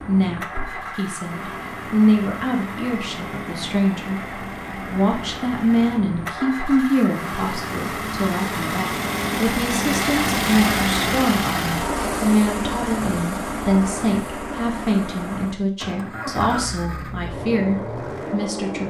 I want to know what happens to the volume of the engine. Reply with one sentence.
The loudness of the engine goes up, then down.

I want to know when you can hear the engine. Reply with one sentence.
The engine can be heard from 0.0 to 18.8 s.